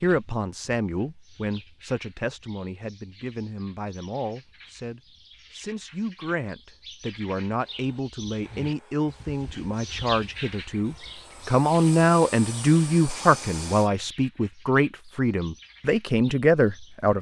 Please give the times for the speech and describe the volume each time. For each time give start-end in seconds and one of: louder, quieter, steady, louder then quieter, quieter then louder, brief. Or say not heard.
0.0-17.1 louder.